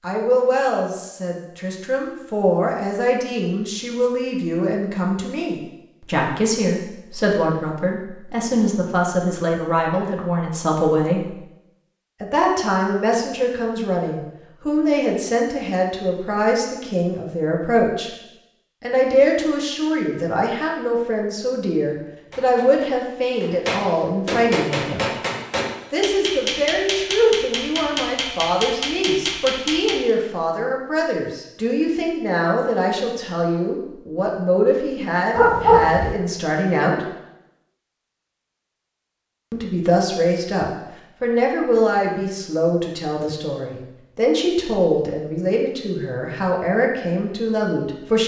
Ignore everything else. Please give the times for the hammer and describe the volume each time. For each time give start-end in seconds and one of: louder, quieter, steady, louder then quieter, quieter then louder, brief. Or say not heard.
22.3-30.1 steady.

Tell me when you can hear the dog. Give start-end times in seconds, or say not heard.
35.4-36.1.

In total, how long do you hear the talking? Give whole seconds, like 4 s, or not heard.
43 s.